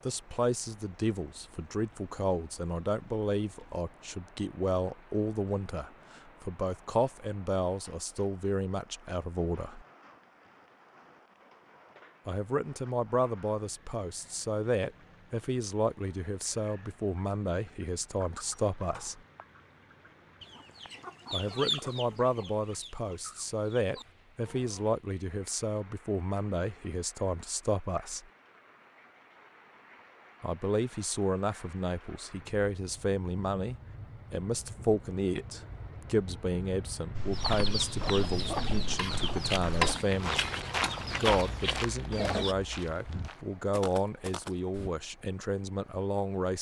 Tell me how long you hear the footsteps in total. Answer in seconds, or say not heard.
8 s.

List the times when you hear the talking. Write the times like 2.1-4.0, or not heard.
0.1-9.8, 12.2-19.2, 21.3-28.2, 30.4-40.5, 41.2-46.5.